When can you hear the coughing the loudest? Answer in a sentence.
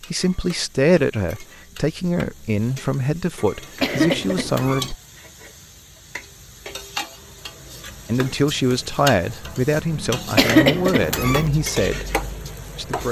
The volume of the coughing peaks at 11 seconds.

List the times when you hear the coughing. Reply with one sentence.
The coughing can be heard from 3.8 to 5.0 s and from 10.3 to 11.5 s.